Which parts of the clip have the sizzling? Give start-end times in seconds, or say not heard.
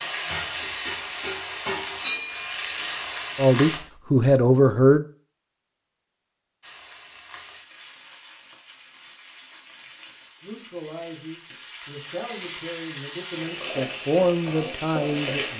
0.0-3.8, 6.6-15.5.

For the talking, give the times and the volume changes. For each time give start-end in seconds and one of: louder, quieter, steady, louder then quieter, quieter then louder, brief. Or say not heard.
3.4-5.0 brief
10.4-15.5 louder.